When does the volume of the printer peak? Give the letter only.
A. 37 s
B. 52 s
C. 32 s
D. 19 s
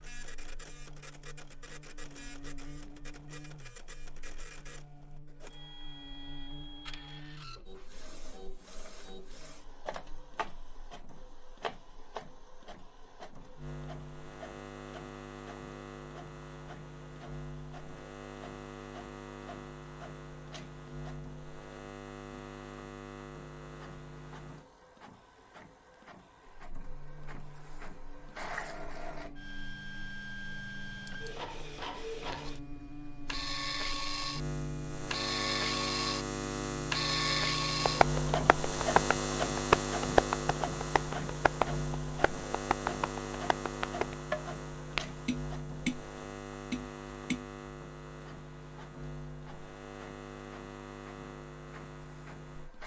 A.